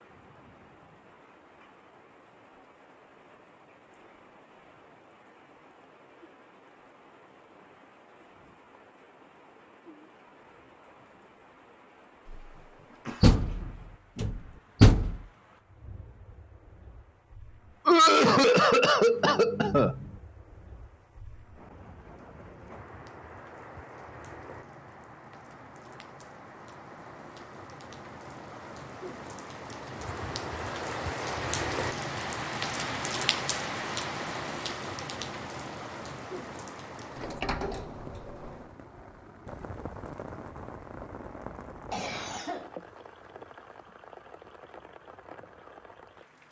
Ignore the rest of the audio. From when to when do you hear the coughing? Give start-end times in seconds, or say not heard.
12.2-13.8, 17.9-20.1, 41.9-42.7.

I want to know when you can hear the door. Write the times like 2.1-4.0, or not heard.
13.2-15.2, 37.1-38.7.